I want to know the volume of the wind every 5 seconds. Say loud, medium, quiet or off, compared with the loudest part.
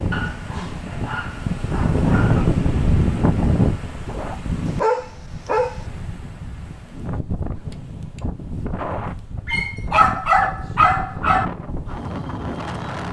loud, medium, medium.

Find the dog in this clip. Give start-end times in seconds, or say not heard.
0.1-2.5, 4.7-5.8, 9.4-11.4.